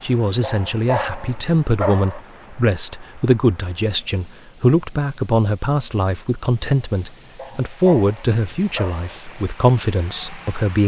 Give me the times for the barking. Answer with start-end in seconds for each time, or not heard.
0.4-2.2, 7.3-9.2.